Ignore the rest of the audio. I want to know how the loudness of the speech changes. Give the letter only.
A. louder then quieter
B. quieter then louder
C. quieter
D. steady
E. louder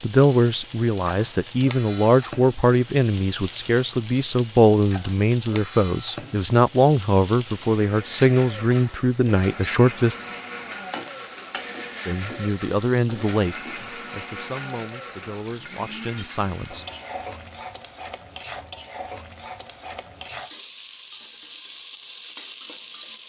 C.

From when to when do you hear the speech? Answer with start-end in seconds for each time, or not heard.
0.0-10.2, 12.1-16.9.